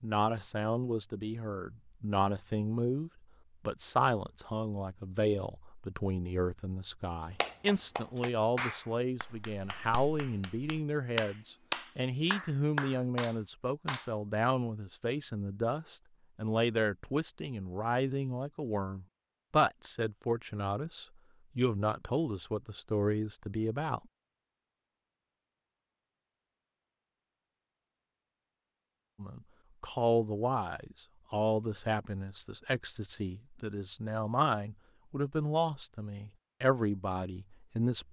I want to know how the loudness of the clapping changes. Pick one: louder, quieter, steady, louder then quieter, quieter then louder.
quieter then louder.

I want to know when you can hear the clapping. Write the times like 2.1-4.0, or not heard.
7.4-14.1.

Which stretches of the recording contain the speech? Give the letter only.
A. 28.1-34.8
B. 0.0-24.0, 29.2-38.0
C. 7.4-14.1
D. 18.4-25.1
B.